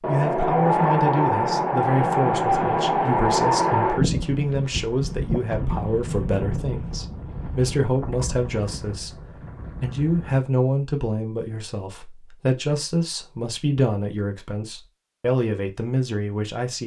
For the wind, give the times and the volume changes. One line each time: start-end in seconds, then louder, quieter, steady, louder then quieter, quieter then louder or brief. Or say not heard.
0.0-10.4 quieter.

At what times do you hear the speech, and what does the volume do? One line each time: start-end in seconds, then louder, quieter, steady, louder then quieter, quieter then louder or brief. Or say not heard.
0.1-16.8 steady.